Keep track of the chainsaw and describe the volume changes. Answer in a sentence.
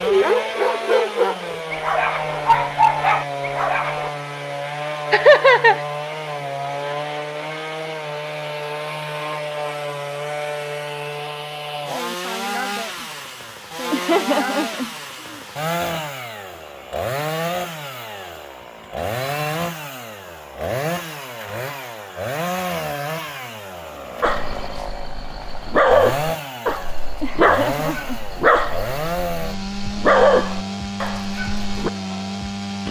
The volume of the chainsaw stays about the same.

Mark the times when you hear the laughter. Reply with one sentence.
You can hear the laughter from 5.1 to 5.8 s, from 13.9 to 14.9 s and from 27.2 to 28.2 s.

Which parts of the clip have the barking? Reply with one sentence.
You can hear the barking from 0.0 to 4.1 s and from 24.2 to 31.9 s.